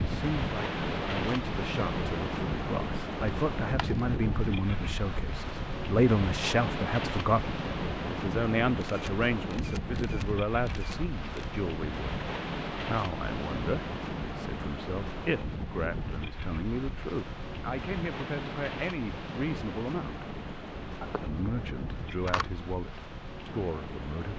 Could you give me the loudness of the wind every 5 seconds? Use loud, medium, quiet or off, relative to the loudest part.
loud, loud, loud, medium, medium.